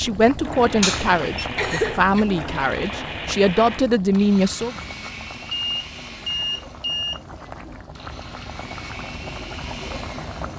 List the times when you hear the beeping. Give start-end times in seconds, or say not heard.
0.8-1.4, 5.5-7.2.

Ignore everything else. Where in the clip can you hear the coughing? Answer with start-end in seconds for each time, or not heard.
1.6-2.2.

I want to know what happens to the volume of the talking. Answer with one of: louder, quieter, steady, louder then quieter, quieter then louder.
quieter then louder.